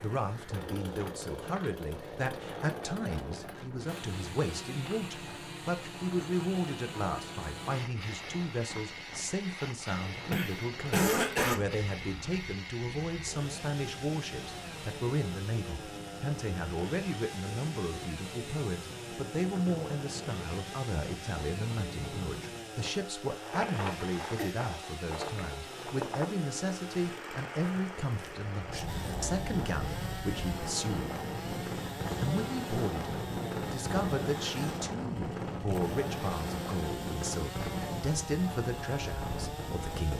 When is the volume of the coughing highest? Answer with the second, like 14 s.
11 s.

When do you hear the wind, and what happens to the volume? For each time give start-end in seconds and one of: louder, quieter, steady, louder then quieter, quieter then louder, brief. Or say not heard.
0.0-40.1 louder.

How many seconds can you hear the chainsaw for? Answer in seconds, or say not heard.
40 s.